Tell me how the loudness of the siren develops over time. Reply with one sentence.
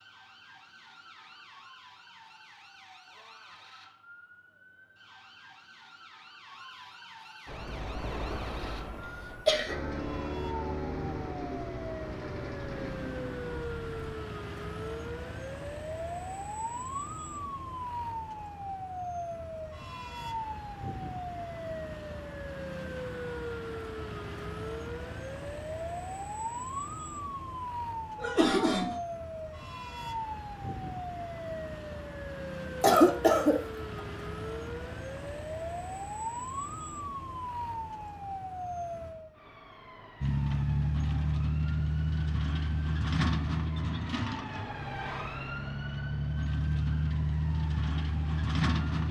The loudness of the siren goes up, then down.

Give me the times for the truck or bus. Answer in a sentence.
You can hear the truck or bus from 7.5 to 14.2 s and from 40.2 to 49.0 s.